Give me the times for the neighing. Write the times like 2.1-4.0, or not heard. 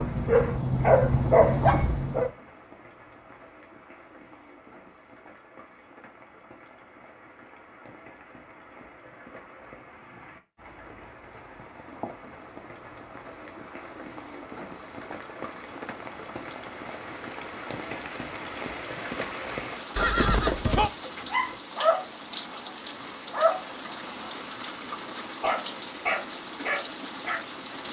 19.9-20.9.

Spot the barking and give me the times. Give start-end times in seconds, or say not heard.
0.0-2.3, 21.1-24.7, 25.4-27.4.